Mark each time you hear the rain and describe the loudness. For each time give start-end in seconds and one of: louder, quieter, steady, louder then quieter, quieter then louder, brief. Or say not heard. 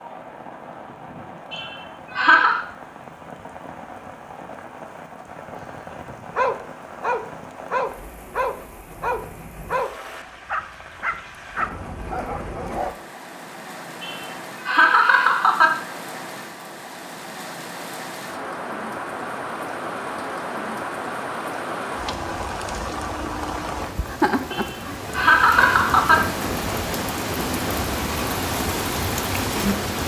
0.0-30.0 louder.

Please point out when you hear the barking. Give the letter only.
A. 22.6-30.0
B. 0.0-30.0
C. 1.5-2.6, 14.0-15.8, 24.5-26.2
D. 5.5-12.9
D.